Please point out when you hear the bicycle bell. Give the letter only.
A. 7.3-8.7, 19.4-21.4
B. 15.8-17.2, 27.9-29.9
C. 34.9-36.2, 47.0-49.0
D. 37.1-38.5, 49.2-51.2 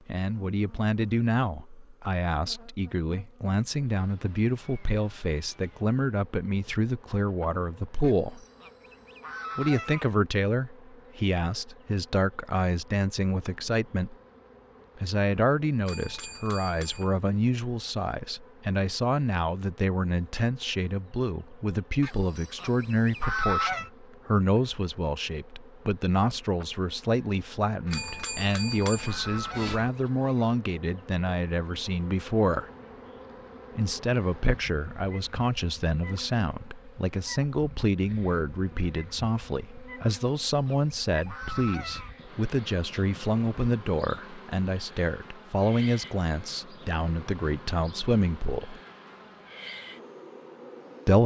B.